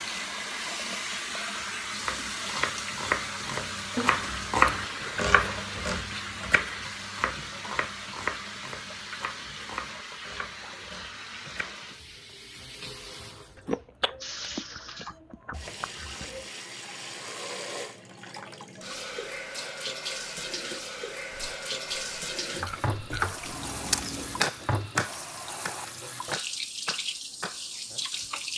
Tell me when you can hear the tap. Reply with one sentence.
The tap can be heard from 0.0 to 28.5 s.